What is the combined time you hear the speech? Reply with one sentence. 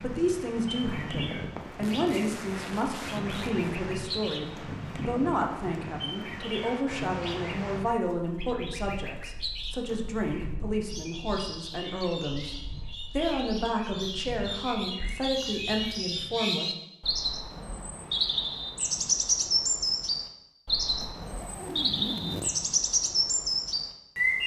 You can hear the speech for 17 seconds altogether.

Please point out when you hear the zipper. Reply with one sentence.
The zipper can be heard from 1.8 to 3.6 s and from 21.0 to 22.6 s.